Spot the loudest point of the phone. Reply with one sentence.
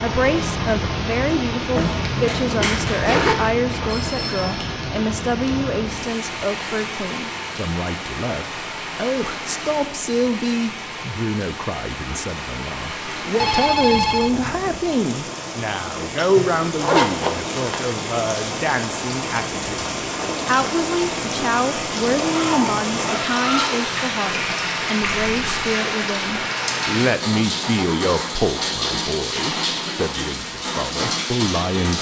The volume of the phone peaks at 14 seconds.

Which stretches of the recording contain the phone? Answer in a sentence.
The phone can be heard from 3.9 to 4.8 s, from 13.4 to 14.9 s and from 25.1 to 25.7 s.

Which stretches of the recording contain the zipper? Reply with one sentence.
You can hear the zipper from 1.8 to 3.4 s, from 16.8 to 17.9 s and from 22.2 to 23.9 s.